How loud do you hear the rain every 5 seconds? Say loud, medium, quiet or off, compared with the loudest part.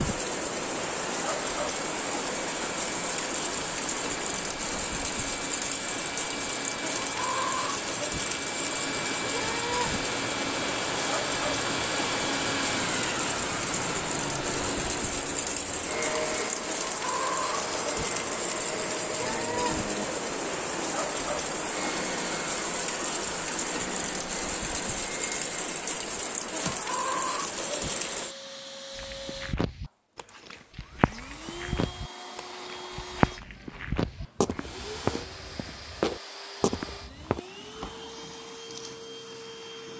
loud, loud, loud, loud, loud, loud, off, off.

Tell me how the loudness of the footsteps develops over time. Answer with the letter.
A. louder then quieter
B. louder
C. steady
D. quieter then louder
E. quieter
B.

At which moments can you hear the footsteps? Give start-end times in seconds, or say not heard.
28.9-37.4.